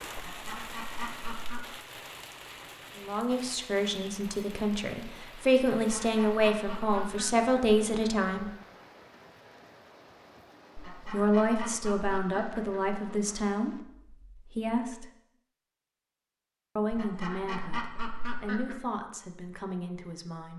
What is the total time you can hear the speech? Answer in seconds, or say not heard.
13 s.